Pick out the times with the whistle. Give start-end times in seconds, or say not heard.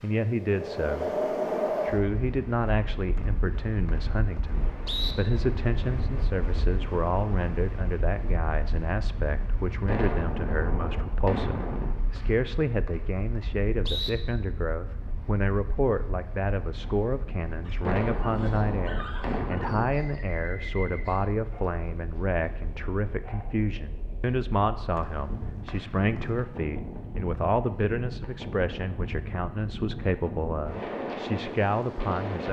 3.1-5.2, 12.2-14.1, 24.9-26.3.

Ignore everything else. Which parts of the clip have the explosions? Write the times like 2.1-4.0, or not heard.
9.8-11.9, 17.9-19.9.